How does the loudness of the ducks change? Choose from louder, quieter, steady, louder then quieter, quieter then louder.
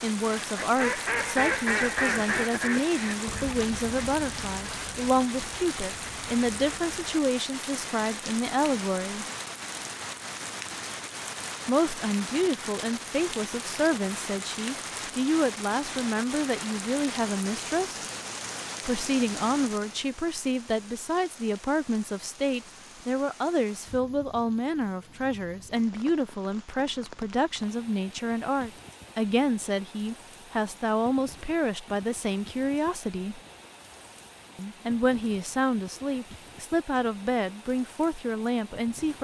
quieter.